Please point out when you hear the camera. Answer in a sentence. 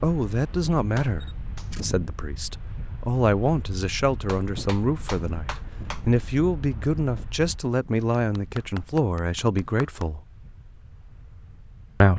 You can hear the camera from 1.2 to 1.9 s.